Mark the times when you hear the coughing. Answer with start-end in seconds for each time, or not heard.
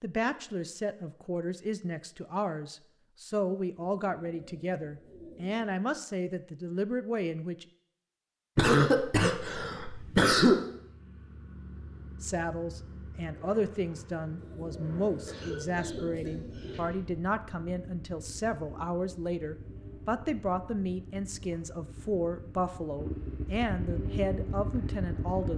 8.6-10.6, 15.2-16.9.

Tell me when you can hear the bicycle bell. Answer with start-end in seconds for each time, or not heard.
not heard.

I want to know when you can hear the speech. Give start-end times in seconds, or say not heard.
0.0-7.7, 12.2-25.5.